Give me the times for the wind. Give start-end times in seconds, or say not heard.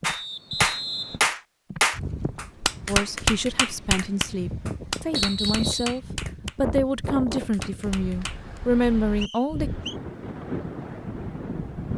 1.9-11.9.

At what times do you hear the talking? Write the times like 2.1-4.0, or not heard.
2.9-9.7.